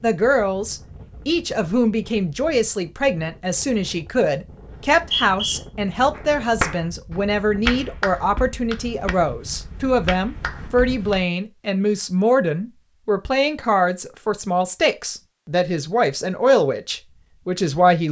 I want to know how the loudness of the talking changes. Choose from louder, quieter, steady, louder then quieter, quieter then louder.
steady.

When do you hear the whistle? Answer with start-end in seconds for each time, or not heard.
4.7-5.6.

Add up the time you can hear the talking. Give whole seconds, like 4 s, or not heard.
18 s.